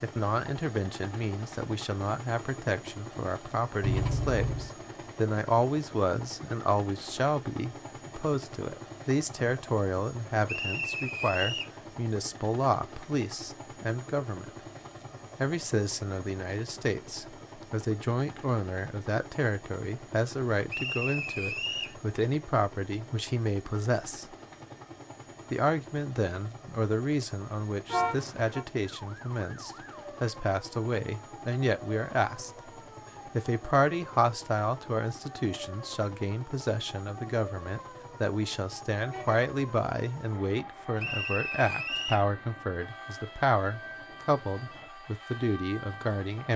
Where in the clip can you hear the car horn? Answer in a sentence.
The car horn can be heard from 3.8 to 4.7 s, from 27.9 to 28.6 s and from 39.0 to 39.5 s.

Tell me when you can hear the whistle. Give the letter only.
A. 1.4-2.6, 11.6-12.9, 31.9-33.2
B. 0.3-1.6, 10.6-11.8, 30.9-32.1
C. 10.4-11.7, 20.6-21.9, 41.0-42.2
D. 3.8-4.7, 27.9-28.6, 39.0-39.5
C.